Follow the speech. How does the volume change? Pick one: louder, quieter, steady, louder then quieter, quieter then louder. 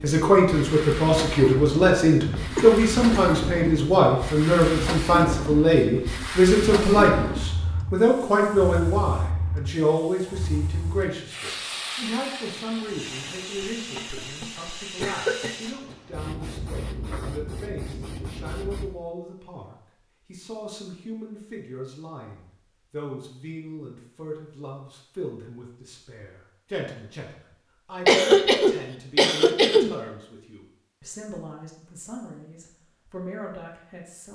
quieter.